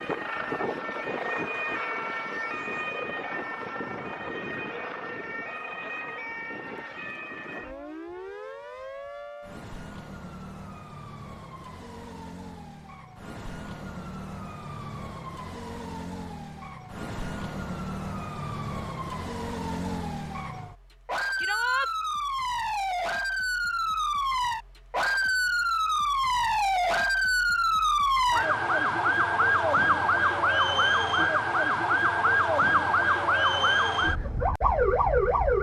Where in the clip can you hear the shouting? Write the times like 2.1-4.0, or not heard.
21.4-21.9.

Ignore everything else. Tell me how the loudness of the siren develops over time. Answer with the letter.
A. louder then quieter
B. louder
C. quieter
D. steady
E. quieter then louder
E.